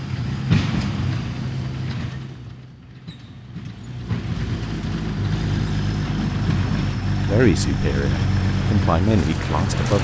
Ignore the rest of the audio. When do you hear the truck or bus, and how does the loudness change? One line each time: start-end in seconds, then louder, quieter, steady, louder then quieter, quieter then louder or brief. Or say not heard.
0.0-9.9 quieter then louder.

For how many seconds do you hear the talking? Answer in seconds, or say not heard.
3 s.